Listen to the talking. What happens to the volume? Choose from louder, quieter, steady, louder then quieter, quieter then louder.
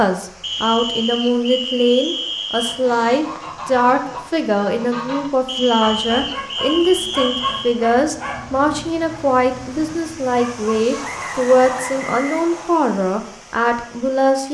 steady.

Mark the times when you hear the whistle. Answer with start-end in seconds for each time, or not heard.
0.4-2.8, 5.5-7.8, 11.0-12.8.